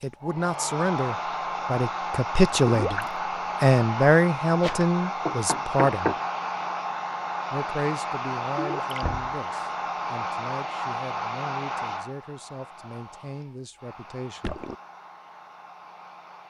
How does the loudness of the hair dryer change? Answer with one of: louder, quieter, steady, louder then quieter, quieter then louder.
quieter.